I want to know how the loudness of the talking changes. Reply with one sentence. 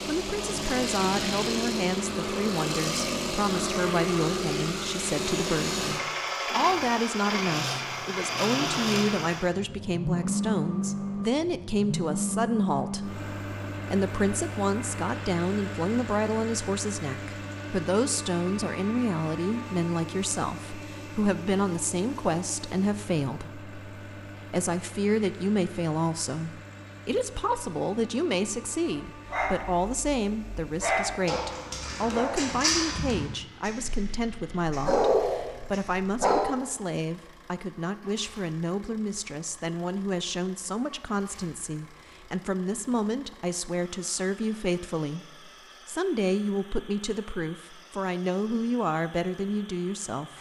The volume of the talking stays about the same.